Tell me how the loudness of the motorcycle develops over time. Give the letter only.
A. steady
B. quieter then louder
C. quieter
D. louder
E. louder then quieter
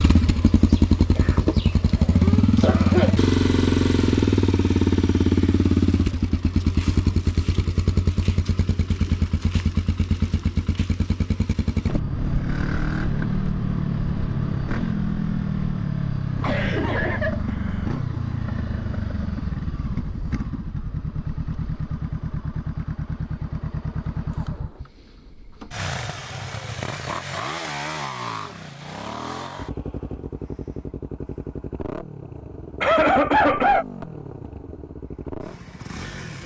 C.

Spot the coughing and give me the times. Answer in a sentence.
The coughing can be heard from 1.1 to 3.1 s, from 16.4 to 18.0 s and from 32.8 to 33.9 s.